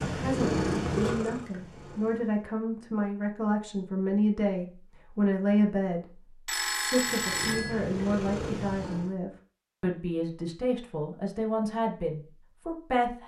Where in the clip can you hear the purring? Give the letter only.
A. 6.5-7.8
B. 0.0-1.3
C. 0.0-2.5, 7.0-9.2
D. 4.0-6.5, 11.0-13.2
C.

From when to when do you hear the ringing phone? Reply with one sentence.
You can hear the ringing phone from 6.5 to 7.8 s.